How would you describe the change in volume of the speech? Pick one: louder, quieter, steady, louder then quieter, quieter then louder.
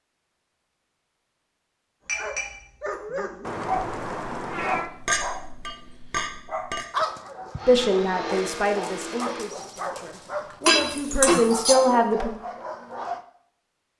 quieter then louder.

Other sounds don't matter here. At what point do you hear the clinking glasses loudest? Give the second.
11 s.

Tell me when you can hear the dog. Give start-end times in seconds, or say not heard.
2.1-13.2.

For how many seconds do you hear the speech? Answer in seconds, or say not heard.
5 s.